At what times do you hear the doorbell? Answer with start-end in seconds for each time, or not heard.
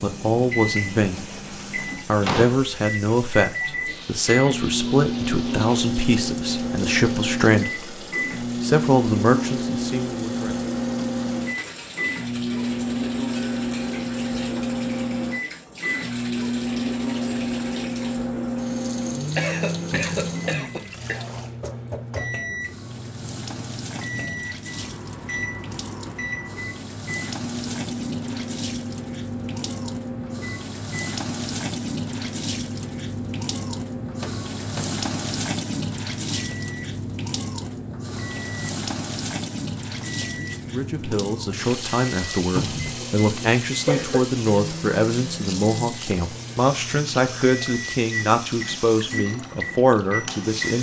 not heard.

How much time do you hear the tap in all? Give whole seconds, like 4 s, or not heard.
51 s.